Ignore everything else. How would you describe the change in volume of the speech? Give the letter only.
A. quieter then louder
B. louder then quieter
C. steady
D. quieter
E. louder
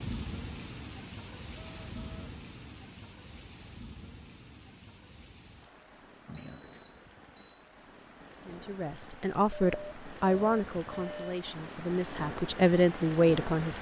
A.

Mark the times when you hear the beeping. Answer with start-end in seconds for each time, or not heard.
1.4-2.4, 6.2-7.7, 9.5-11.4.